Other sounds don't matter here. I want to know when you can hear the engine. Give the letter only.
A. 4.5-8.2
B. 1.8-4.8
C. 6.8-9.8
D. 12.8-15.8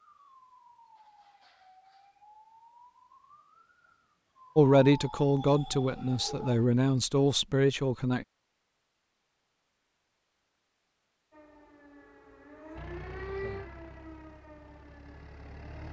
D.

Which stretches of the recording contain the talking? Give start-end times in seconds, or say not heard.
4.5-8.2.